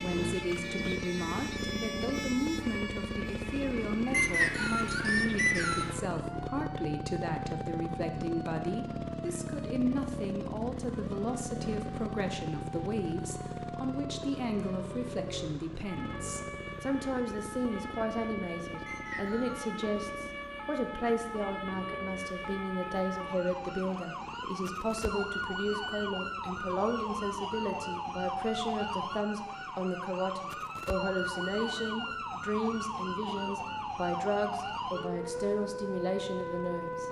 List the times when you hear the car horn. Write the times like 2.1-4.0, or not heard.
not heard.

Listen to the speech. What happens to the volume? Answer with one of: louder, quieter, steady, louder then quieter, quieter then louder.
steady.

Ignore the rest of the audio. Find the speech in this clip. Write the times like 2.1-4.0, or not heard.
0.0-37.0.